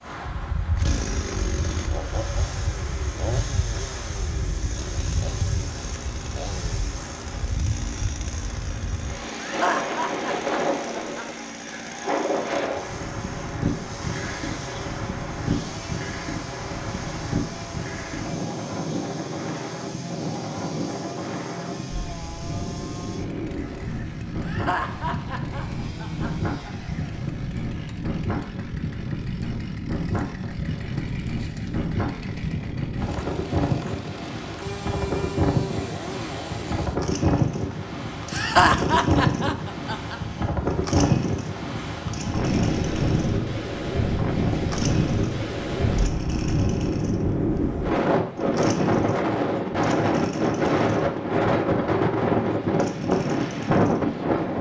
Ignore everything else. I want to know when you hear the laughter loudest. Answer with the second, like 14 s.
39 s.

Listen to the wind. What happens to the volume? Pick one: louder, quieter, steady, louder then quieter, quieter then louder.
louder.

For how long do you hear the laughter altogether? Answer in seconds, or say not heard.
6 s.